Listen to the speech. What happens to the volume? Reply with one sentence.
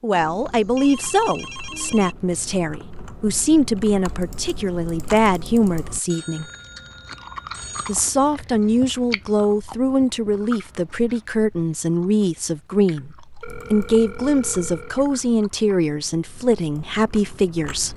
The loudness of the speech stays about the same.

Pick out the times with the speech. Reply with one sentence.
The speech can be heard from 0.0 to 6.5 s and from 7.8 to 17.9 s.